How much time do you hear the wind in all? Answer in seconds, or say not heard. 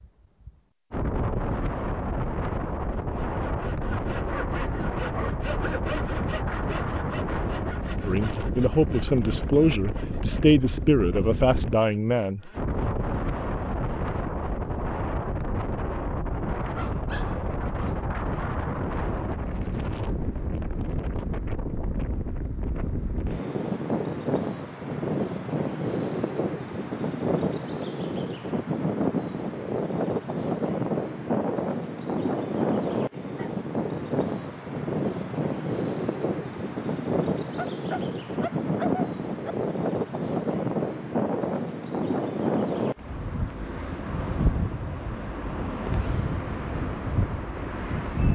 48 s.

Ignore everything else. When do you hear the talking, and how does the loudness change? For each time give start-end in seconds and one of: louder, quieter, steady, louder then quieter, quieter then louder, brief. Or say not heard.
8.1-12.5 steady.